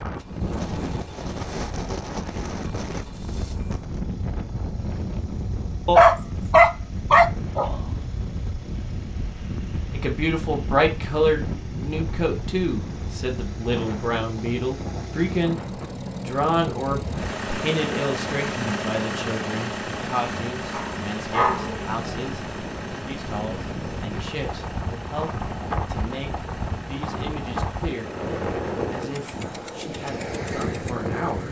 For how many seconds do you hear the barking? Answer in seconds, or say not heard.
3 s.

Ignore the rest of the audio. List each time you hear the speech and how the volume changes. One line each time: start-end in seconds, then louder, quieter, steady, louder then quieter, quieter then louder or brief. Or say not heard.
9.9-28.1 quieter
28.9-31.4 brief.